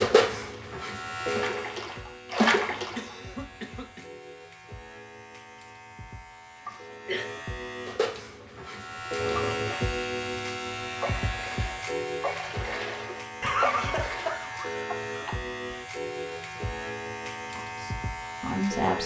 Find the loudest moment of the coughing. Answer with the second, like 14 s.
14 s.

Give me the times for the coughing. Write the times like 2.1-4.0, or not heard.
2.7-4.0, 6.7-7.2, 13.4-15.3.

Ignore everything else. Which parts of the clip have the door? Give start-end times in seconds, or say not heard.
not heard.